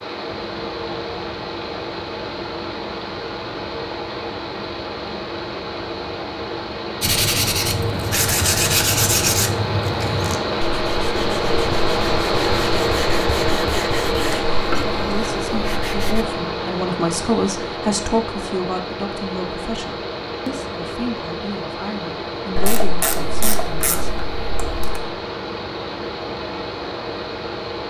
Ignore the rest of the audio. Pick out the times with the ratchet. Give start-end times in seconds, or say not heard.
22.6-25.0.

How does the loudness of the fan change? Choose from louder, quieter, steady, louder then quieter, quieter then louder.
louder then quieter.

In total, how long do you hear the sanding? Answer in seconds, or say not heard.
9 s.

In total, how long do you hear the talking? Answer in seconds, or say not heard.
9 s.